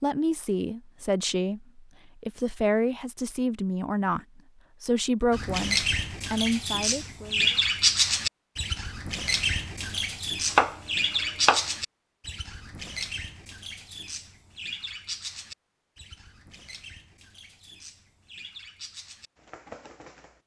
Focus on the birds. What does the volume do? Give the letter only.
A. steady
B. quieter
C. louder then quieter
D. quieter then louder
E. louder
B.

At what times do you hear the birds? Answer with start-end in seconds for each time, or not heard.
5.3-20.4.